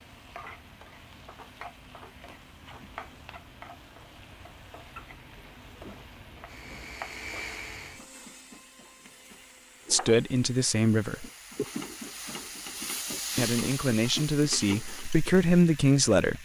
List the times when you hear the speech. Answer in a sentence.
You can hear the speech from 9.9 to 11.2 s and from 13.3 to 16.4 s.